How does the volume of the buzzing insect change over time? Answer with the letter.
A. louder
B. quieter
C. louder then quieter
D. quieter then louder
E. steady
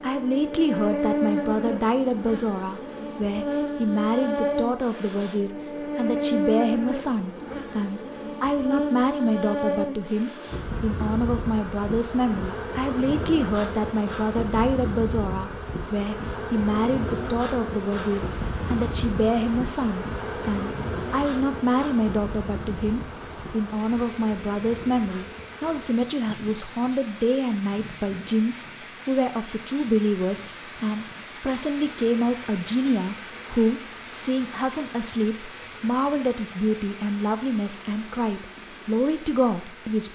B.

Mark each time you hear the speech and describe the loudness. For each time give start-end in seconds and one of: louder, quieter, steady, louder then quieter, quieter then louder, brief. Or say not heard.
0.0-40.0 steady.